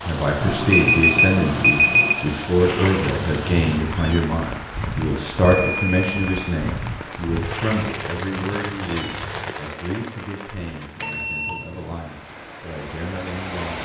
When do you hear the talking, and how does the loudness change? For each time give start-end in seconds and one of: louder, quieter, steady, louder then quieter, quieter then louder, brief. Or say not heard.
0.0-13.7 quieter.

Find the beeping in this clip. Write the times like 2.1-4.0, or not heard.
0.4-2.1, 5.4-6.4, 11.0-11.9.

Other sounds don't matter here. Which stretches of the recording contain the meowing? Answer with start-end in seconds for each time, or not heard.
2.5-4.2, 7.5-9.6.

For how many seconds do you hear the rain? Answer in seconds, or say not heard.
14 s.